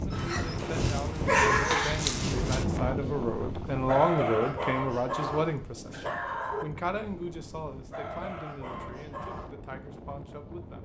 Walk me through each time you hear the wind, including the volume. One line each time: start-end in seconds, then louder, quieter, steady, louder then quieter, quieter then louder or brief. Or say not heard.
0.0-10.7 quieter.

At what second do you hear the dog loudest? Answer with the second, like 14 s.
1 s.